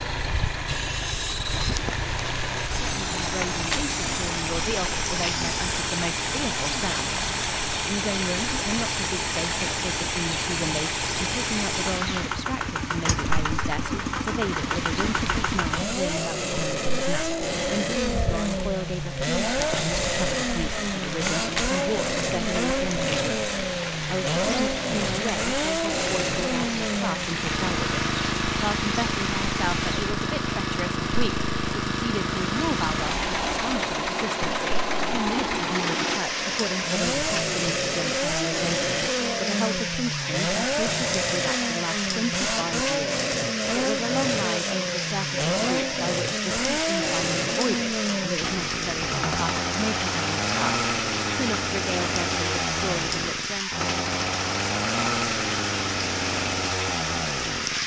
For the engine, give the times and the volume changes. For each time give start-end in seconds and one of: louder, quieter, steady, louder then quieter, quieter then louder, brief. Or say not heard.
0.0-57.8 steady.